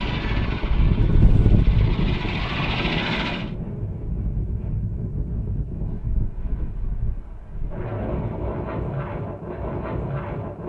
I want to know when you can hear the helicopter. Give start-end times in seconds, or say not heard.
0.0-3.5.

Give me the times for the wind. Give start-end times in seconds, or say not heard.
0.0-10.6.